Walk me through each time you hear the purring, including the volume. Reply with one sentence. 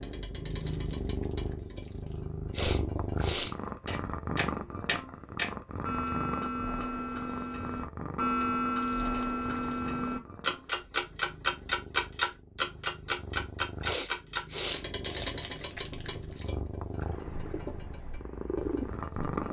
The purring can be heard from 0.0 to 19.4 s, getting quieter then louder.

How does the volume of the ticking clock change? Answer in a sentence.
The loudness of the ticking clock goes up, then down.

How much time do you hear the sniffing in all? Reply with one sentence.
The sniffing can be heard for 2 seconds in total.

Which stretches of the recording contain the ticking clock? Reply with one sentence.
The ticking clock can be heard from 0.0 to 19.4 s.